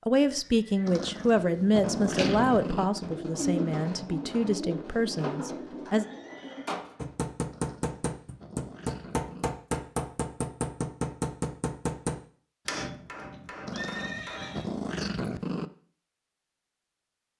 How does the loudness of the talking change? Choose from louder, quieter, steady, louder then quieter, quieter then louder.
quieter.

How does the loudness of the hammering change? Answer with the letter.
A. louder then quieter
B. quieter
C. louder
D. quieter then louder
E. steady
B.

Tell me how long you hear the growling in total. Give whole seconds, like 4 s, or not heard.
6 s.